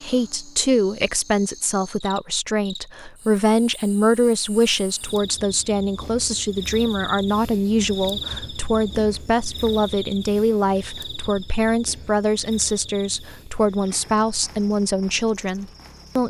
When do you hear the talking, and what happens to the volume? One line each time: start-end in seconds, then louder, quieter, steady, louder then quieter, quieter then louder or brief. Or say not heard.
0.0-16.2 steady.